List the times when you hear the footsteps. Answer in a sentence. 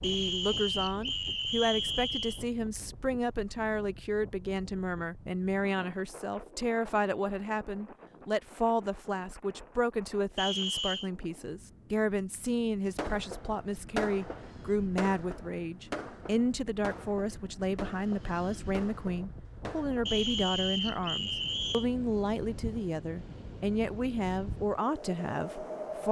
The footsteps can't be heard in this clip.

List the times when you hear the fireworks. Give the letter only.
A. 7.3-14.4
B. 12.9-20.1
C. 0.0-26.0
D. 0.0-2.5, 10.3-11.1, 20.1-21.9
B.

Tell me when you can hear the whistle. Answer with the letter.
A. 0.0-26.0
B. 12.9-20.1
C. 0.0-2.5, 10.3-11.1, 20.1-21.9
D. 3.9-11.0
C.